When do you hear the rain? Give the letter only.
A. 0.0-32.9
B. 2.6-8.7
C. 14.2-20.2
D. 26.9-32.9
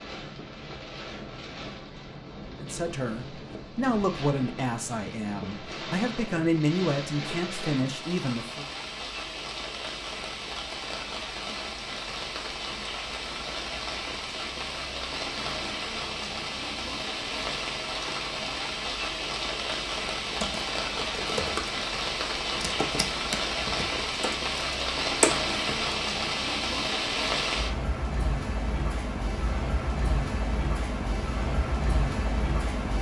A.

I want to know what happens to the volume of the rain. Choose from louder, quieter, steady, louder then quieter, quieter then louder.
louder.